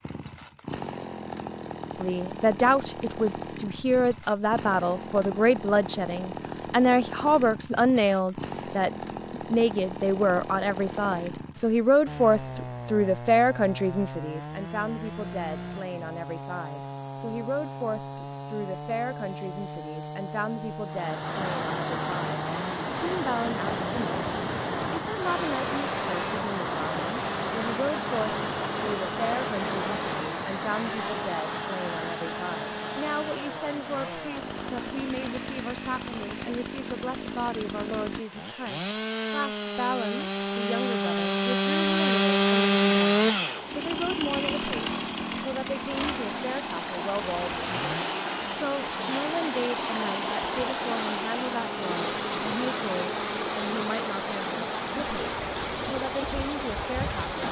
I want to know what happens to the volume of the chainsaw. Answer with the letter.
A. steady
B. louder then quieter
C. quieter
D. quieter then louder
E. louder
E.